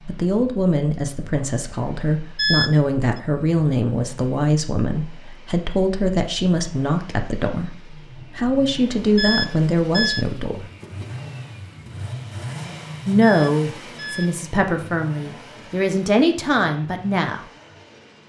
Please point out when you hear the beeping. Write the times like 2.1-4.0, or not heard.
2.4-3.2, 9.2-10.2, 13.2-14.3.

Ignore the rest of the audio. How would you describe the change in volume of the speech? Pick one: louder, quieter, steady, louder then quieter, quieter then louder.
steady.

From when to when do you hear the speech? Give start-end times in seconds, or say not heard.
0.1-10.7, 13.1-17.4.